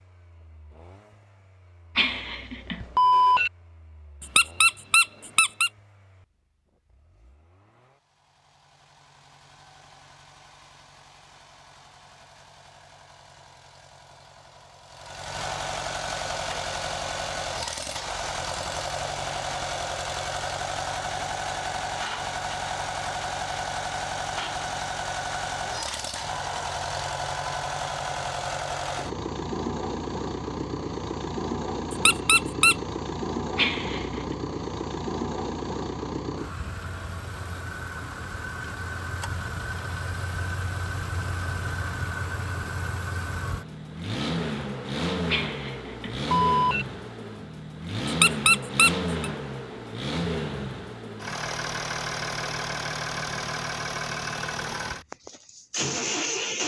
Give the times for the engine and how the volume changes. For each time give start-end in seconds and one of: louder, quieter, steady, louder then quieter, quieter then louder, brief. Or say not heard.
0.0-56.6 louder.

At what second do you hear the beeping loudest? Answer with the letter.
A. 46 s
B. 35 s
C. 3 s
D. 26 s
C.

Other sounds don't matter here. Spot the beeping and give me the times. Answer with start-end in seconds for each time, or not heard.
1.9-3.5, 33.5-34.4, 45.3-46.9.